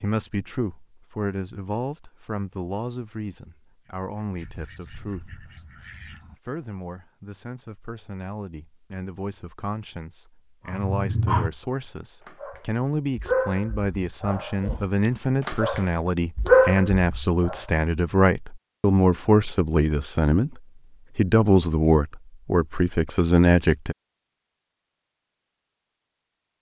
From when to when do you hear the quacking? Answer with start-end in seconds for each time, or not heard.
3.8-6.4.